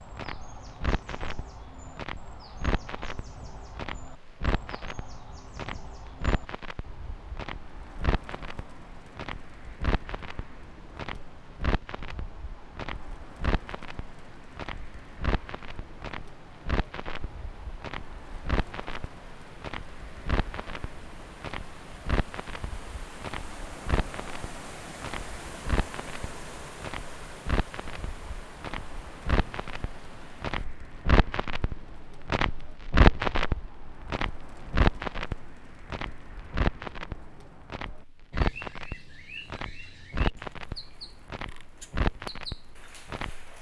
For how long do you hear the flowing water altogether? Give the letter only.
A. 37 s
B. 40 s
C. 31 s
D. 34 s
C.